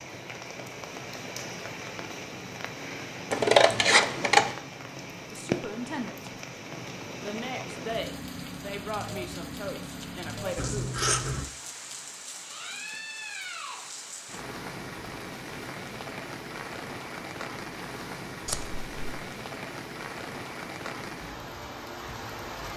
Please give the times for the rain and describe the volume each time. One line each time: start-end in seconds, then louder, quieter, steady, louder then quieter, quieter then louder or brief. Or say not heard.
0.0-22.7 steady.